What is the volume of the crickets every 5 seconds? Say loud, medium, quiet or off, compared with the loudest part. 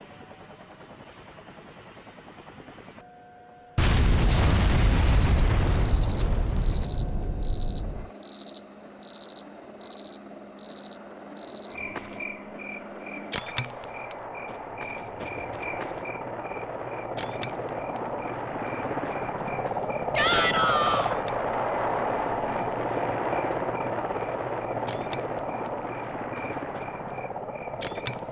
off, loud, medium, quiet, quiet, quiet.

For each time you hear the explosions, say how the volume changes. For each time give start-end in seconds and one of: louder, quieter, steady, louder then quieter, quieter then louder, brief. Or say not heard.
3.8-8.1 quieter.